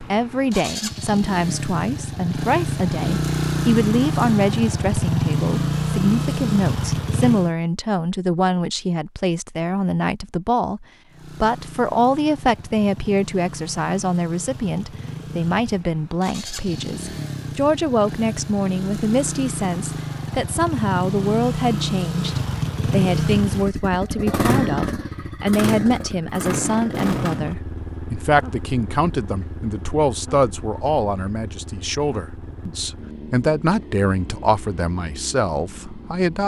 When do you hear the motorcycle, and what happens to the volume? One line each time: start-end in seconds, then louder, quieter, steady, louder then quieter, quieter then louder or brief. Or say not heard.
0.0-7.5 louder
11.1-36.4 louder then quieter.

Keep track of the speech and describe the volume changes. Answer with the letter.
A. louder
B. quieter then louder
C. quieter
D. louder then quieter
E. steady
E.